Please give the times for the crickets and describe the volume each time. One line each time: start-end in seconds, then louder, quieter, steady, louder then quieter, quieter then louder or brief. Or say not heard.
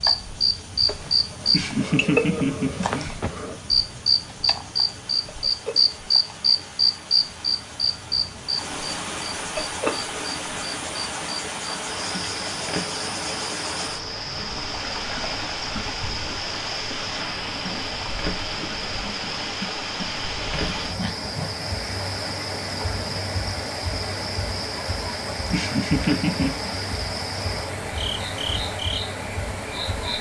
0.0-30.1 quieter.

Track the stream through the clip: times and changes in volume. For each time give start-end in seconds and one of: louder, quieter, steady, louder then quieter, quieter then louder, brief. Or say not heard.
0.0-30.1 louder.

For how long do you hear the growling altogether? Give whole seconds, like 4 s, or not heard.
3 s.